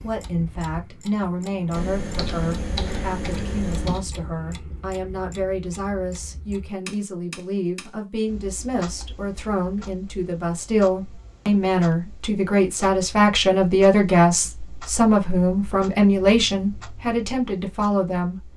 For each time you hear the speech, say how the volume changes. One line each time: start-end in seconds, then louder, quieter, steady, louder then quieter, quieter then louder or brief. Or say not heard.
0.0-18.5 louder.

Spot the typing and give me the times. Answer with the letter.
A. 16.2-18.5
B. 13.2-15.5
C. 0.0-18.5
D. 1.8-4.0
D.